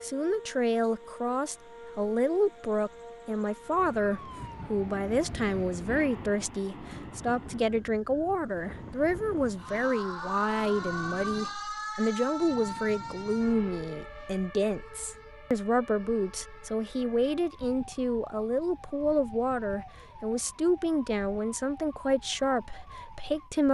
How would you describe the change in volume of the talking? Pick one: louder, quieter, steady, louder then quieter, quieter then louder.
steady.